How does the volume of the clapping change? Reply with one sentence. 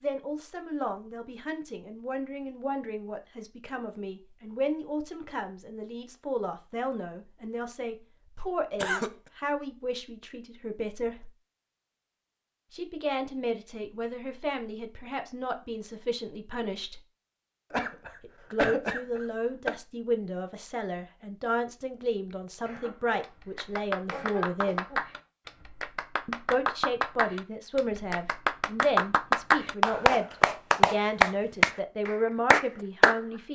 The loudness of the clapping goes up.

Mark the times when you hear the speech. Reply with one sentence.
You can hear the speech from 0.0 to 11.3 s, from 12.7 to 17.0 s, from 18.2 to 25.0 s and from 26.2 to 33.5 s.